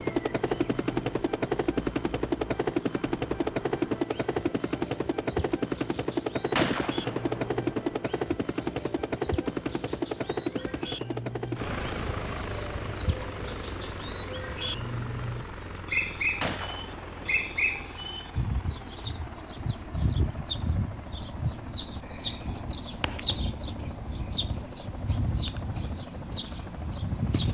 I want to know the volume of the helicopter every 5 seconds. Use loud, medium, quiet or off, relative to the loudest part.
loud, loud, medium, quiet, quiet, quiet.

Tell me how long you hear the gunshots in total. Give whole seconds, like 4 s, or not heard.
3 s.